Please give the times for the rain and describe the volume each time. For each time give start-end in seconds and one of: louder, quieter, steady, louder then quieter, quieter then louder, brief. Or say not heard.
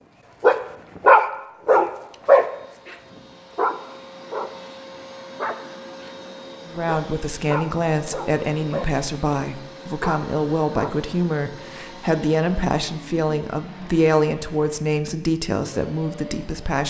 not heard.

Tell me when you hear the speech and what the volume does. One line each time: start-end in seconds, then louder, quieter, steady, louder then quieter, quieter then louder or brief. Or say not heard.
6.7-16.8 steady.